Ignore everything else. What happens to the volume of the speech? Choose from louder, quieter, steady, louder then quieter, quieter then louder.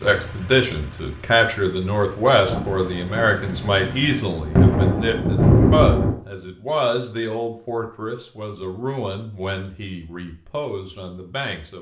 quieter.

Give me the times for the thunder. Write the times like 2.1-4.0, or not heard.
2.5-6.2.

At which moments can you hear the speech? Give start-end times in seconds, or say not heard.
0.0-11.7.